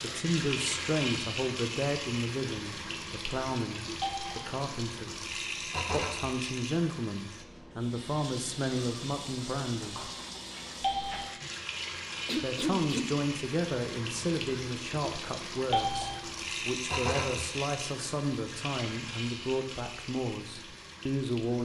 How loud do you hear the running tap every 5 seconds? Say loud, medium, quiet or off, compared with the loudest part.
loud, loud, loud, loud, medium.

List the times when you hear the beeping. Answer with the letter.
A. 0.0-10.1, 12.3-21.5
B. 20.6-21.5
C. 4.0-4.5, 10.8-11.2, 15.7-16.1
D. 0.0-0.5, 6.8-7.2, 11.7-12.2
C.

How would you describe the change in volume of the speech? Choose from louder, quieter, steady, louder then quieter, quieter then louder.
steady.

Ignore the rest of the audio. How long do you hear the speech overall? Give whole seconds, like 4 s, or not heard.
19 s.